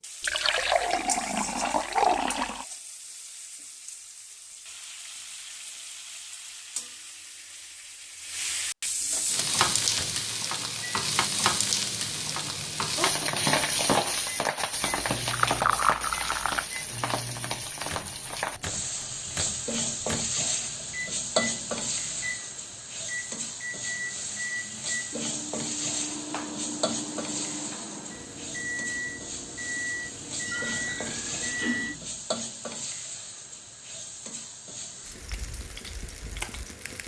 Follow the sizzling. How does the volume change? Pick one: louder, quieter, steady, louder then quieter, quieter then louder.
louder then quieter.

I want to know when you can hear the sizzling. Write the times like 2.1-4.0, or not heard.
0.0-37.0.